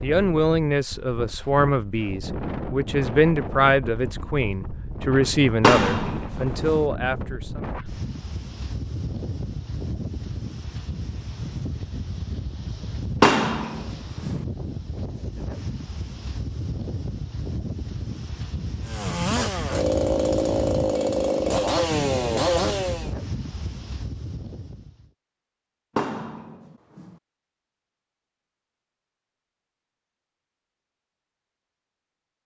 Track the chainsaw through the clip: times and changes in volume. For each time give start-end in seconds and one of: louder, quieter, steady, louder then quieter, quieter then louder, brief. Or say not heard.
18.9-23.1 steady.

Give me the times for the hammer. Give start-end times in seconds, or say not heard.
5.6-6.8, 13.2-14.4, 25.9-27.1.